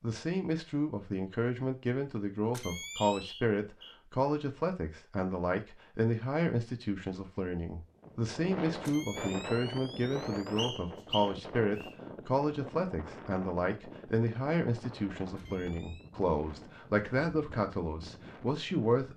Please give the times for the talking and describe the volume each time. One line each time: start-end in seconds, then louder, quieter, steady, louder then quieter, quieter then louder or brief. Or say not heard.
0.0-19.1 steady.